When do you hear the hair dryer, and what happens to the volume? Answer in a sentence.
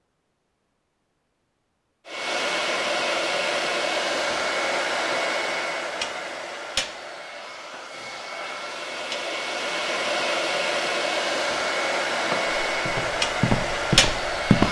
You can hear the hair dryer from 2.0 to 14.6 s, getting quieter then louder.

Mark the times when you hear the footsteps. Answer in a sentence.
The footsteps can be heard from 12.0 to 14.6 s.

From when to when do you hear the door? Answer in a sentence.
The door can't be heard in this clip.